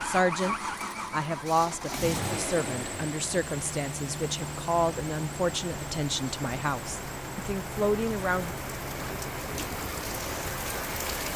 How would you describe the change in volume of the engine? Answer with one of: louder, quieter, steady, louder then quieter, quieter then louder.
quieter.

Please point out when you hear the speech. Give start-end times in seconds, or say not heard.
0.0-8.6.